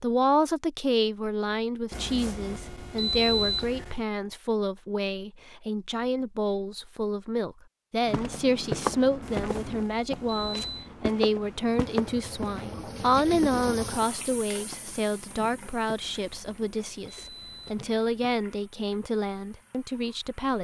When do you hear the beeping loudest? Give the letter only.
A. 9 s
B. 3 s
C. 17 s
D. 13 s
B.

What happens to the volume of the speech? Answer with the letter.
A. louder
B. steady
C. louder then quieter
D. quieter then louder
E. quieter
B.